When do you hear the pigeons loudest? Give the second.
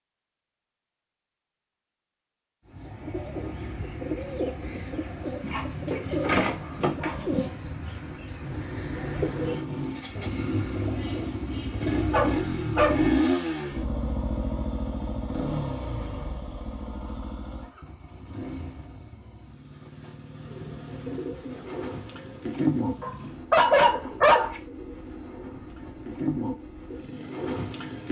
23 s.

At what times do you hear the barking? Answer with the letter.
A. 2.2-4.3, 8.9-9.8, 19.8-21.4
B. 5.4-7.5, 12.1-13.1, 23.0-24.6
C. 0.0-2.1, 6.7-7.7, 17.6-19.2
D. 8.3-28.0
B.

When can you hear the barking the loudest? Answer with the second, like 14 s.
24 s.